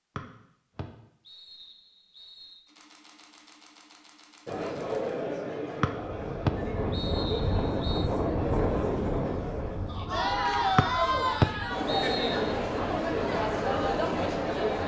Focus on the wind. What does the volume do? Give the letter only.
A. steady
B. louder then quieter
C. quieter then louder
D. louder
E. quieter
E.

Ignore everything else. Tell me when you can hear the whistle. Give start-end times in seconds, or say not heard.
0.1-2.6, 5.8-8.1, 10.8-12.6.